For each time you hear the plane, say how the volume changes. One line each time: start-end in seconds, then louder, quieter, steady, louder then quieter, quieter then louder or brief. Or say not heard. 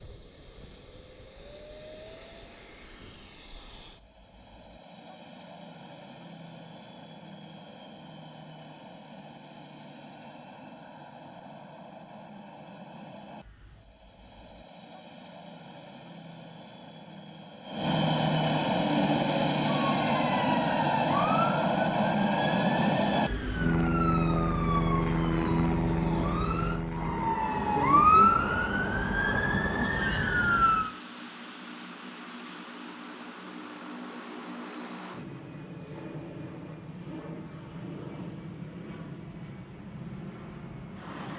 0.0-41.3 louder then quieter.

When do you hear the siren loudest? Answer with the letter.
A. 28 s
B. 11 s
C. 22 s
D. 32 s
A.